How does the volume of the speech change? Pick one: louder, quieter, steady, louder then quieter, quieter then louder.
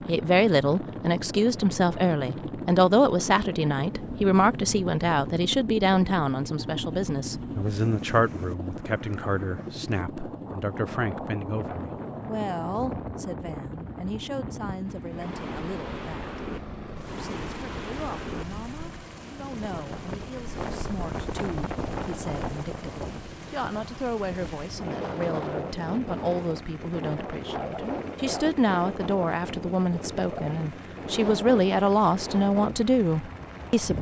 quieter then louder.